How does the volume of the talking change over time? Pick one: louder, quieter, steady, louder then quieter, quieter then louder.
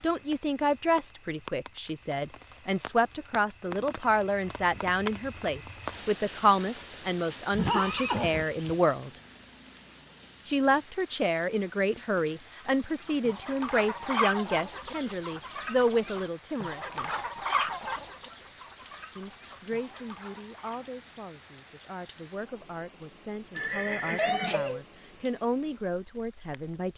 quieter.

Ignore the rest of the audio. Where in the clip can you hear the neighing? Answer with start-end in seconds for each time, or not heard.
7.5-8.8, 23.6-24.8.